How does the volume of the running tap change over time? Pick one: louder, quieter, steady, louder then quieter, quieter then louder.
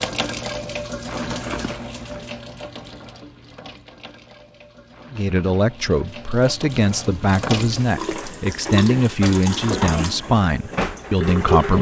quieter then louder.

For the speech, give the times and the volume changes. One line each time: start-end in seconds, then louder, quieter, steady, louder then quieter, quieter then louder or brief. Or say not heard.
5.1-11.7 steady.